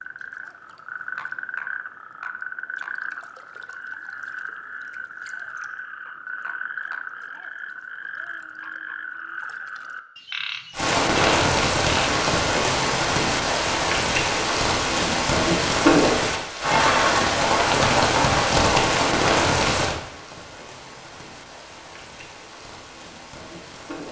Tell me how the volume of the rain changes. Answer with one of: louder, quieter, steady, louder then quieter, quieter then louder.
quieter.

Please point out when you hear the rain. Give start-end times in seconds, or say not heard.
10.7-24.0.